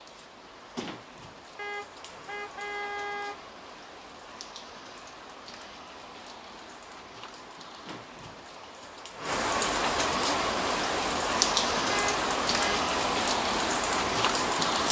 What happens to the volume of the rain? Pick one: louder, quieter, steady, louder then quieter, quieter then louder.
louder.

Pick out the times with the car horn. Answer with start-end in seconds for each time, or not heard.
1.6-3.5, 11.9-12.8.